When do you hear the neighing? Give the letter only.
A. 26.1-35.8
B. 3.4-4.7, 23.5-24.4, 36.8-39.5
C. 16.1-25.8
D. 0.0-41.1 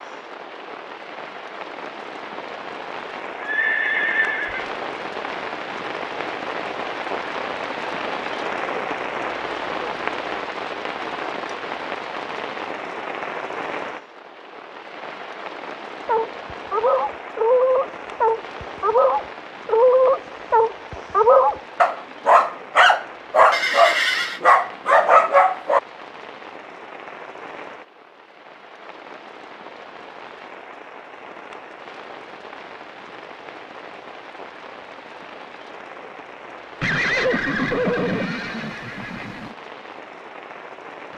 B.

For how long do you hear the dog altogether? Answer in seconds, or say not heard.
10 s.